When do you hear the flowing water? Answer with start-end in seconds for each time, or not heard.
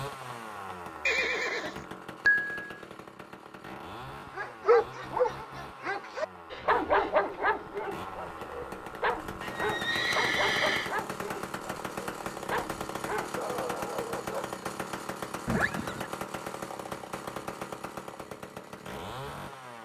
not heard.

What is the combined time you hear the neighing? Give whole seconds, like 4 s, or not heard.
4 s.